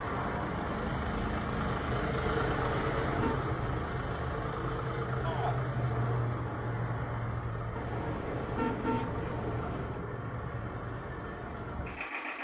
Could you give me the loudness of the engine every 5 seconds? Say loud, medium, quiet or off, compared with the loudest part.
loud, loud, medium.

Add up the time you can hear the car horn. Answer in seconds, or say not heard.
3 s.